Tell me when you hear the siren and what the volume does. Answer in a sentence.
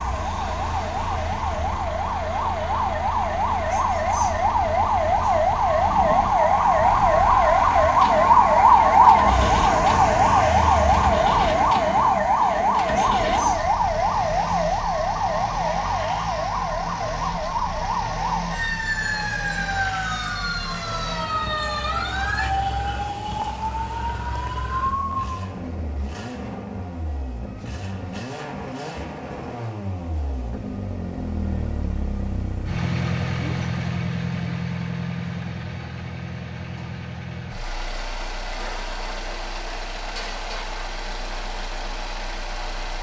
The siren can be heard from 0.0 to 25.4 s, getting louder then quieter.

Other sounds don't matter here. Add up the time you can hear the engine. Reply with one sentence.
The engine can be heard for 43 seconds in total.